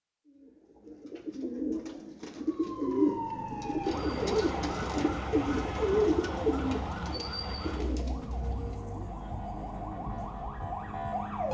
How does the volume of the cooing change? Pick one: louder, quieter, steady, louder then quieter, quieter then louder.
louder then quieter.